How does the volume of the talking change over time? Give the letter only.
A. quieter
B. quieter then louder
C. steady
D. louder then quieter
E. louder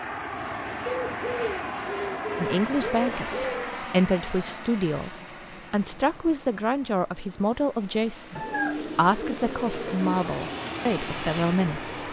C.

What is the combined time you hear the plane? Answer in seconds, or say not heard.
12 s.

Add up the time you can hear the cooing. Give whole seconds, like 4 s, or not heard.
5 s.